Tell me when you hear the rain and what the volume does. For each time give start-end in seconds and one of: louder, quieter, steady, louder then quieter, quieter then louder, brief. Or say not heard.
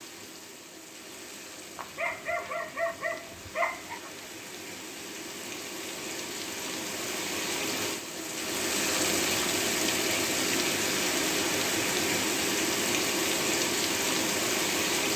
0.0-15.1 louder.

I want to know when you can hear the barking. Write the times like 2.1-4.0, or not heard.
1.8-4.2.